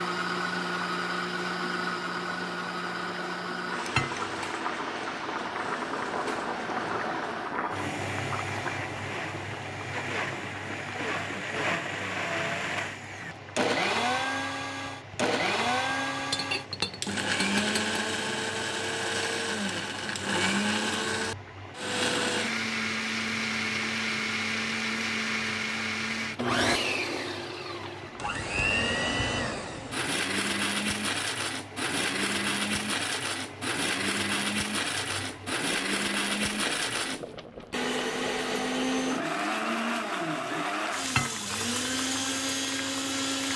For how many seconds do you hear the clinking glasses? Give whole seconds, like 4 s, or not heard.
3 s.